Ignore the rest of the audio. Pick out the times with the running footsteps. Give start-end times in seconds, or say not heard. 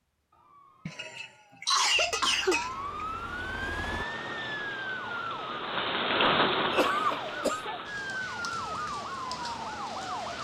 not heard.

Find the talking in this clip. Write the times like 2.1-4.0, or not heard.
not heard.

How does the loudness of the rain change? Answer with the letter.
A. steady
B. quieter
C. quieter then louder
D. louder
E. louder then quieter
E.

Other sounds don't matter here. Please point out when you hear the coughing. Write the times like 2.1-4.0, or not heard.
0.8-2.9, 6.2-7.7.